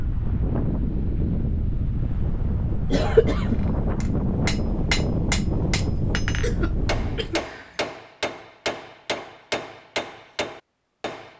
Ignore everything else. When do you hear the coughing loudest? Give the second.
3 s.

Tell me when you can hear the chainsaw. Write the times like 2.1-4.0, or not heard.
not heard.